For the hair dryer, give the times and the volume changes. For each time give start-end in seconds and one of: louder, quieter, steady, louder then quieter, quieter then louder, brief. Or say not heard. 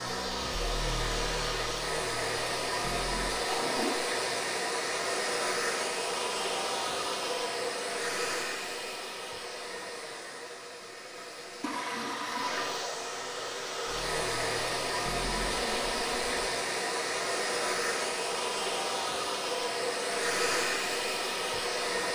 0.0-22.0 quieter then louder.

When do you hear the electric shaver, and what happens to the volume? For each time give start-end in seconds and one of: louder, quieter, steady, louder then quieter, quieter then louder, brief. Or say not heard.
not heard.